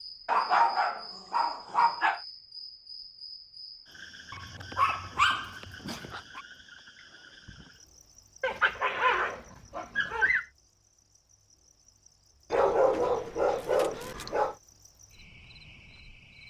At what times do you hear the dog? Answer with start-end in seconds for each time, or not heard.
0.2-2.2, 4.3-6.4, 8.4-10.4, 12.5-14.6.